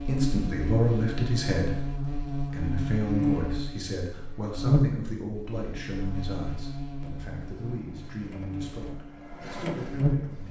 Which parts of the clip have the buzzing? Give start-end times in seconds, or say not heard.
0.0-10.4.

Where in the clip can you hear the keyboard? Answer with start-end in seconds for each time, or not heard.
not heard.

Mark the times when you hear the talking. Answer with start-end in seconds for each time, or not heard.
0.0-10.4.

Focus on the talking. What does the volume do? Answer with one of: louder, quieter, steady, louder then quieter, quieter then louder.
quieter.